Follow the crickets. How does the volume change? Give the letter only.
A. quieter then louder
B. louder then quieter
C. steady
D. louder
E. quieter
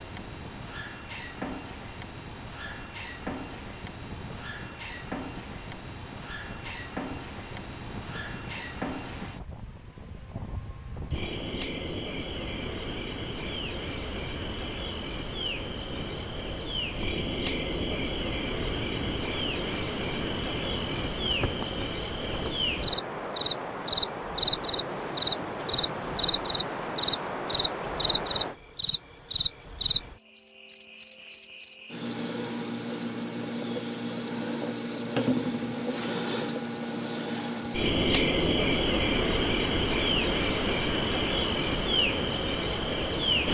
D.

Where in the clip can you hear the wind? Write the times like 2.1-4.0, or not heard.
0.0-28.6.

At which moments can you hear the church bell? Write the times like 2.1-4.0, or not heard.
not heard.